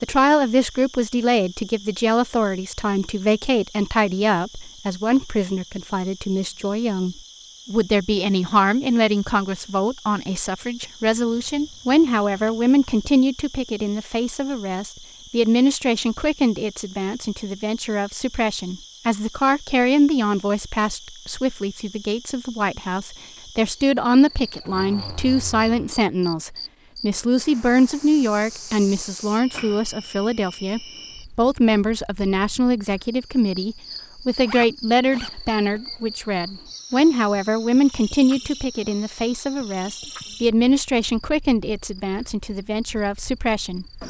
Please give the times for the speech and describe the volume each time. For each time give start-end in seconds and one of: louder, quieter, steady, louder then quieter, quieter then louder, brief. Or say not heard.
0.0-43.9 steady.